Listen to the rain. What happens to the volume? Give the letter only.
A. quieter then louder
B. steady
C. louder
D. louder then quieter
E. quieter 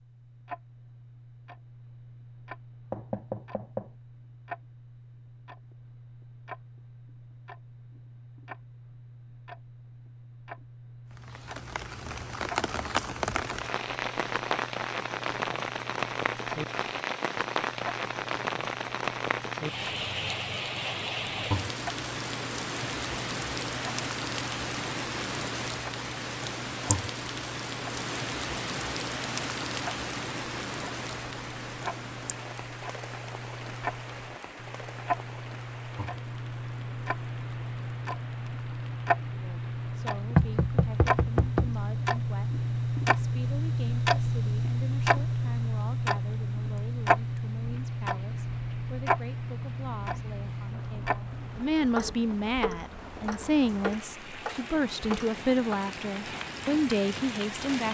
A.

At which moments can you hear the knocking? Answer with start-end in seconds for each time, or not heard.
2.9-3.9, 40.4-41.8.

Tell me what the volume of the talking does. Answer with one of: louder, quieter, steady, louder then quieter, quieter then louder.
louder.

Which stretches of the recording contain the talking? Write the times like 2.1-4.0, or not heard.
39.3-57.8.